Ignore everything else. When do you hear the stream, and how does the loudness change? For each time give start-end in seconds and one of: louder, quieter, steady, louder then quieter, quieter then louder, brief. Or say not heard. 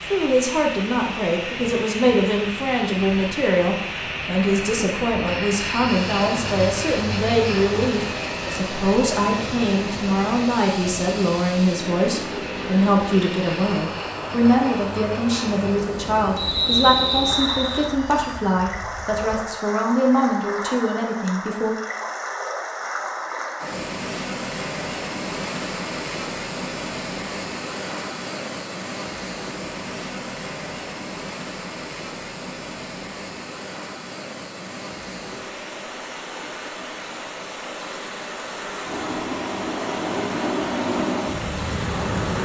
0.0-42.4 steady.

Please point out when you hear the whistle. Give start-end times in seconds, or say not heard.
16.4-17.9.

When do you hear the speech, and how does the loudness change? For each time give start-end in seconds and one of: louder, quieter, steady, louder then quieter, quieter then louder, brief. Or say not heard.
0.0-21.8 steady.